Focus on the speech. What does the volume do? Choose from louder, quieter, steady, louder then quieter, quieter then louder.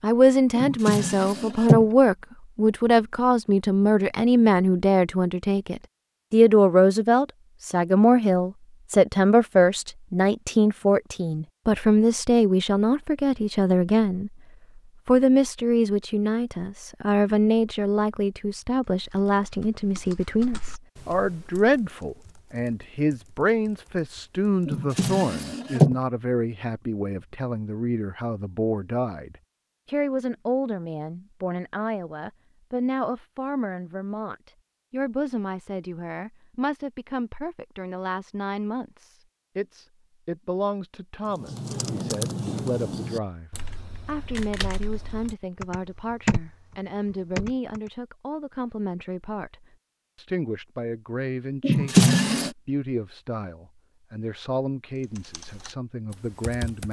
quieter.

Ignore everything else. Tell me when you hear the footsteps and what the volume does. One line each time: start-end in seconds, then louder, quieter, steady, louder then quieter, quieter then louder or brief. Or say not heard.
not heard.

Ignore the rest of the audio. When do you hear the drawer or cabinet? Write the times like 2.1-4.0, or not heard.
0.6-1.9, 24.6-25.9, 51.6-52.5.